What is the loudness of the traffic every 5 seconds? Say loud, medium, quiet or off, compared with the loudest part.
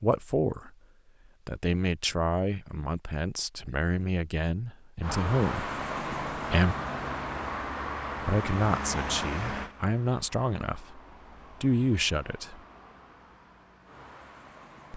off, loud, quiet.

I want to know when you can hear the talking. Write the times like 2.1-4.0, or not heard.
0.0-0.7, 1.4-6.8, 8.2-11.0, 11.6-12.6.